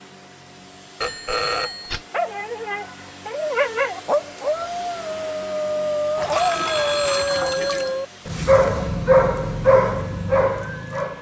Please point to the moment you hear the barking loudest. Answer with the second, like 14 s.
9 s.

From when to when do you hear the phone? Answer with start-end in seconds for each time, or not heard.
1.0-2.0, 6.2-8.1.